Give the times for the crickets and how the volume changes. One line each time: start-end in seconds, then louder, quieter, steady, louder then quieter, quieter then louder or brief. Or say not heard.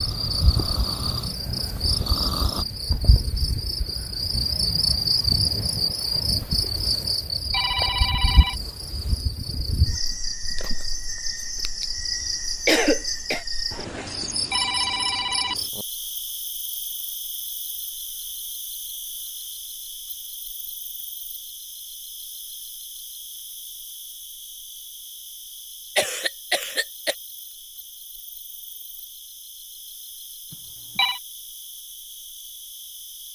0.0-33.3 quieter.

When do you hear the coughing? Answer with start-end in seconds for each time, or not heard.
12.7-13.4, 25.9-27.1.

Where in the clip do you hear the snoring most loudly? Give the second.
2 s.